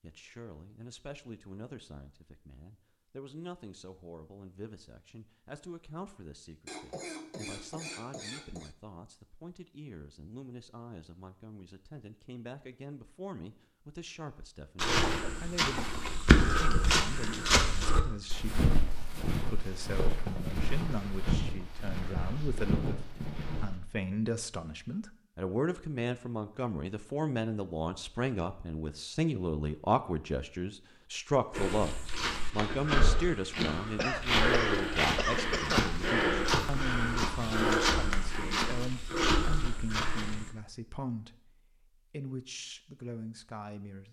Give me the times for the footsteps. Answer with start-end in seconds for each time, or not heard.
14.8-23.8, 31.5-40.5.